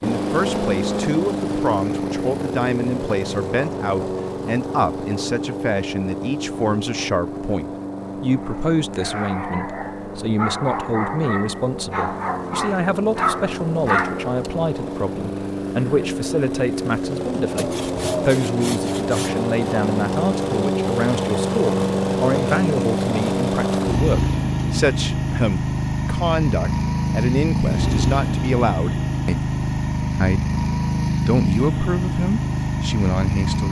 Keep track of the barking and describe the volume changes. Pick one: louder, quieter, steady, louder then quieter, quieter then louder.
louder.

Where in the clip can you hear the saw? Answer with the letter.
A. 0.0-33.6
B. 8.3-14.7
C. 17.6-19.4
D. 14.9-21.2
C.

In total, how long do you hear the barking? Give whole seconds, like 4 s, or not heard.
6 s.